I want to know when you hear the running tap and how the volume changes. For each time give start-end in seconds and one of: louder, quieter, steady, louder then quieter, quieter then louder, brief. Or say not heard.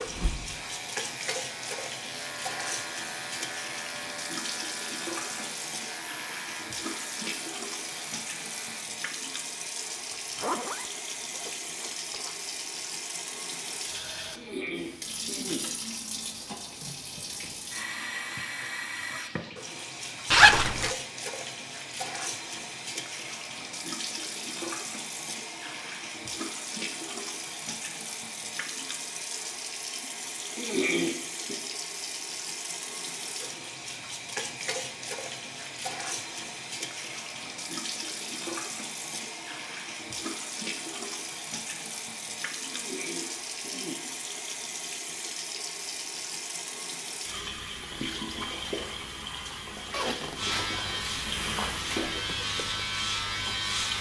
0.0-53.9 steady.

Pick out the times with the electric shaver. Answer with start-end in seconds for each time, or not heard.
0.0-8.9, 50.4-53.9.